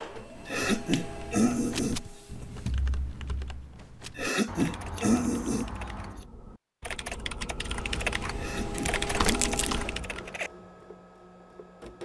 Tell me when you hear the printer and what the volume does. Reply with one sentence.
You can hear the printer briefly from 0.0 to 2.9 s; and from 7.7 to 11.9 s, getting louder then quieter.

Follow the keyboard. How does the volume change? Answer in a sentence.
The loudness of the keyboard goes down, then up.